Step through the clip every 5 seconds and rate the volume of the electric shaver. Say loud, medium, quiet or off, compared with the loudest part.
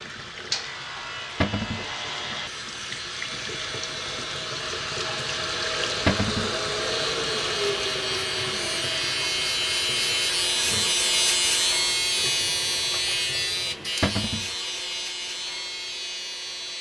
medium, loud, loud, medium.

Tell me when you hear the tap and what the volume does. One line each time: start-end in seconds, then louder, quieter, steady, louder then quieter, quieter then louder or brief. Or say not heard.
0.0-16.7 louder then quieter.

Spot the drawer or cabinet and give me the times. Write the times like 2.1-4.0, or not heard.
1.4-1.9, 6.0-6.5, 14.0-14.5.